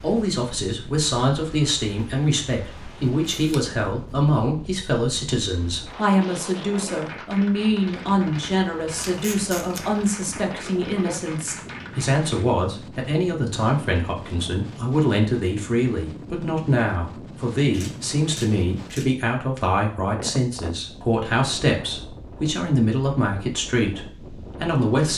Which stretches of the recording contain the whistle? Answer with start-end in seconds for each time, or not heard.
not heard.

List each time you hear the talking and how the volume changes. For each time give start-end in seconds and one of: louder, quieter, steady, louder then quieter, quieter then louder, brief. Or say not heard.
0.0-25.1 steady.